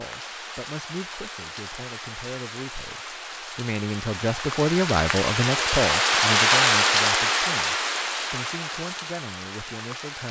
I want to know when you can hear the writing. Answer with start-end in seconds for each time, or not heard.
not heard.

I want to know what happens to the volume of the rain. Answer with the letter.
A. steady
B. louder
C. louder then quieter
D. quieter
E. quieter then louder
C.